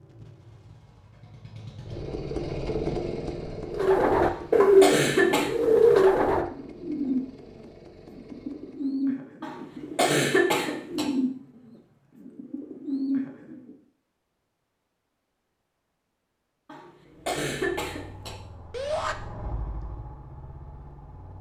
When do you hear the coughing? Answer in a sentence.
The coughing can be heard from 4.2 to 5.5 s, from 9.4 to 11.1 s and from 16.6 to 18.4 s.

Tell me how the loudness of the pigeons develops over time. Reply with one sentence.
The loudness of the pigeons goes down.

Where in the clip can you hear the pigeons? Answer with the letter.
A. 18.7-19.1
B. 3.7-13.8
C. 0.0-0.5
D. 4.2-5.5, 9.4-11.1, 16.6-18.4
B.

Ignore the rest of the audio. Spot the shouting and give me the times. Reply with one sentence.
The shouting can be heard from 18.7 to 19.1 s.